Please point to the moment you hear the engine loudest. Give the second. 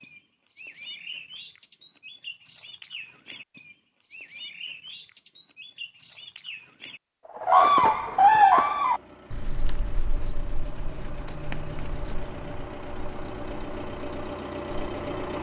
15 s.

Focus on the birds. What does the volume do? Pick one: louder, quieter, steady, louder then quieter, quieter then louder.
louder then quieter.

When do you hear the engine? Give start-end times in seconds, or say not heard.
8.4-15.3.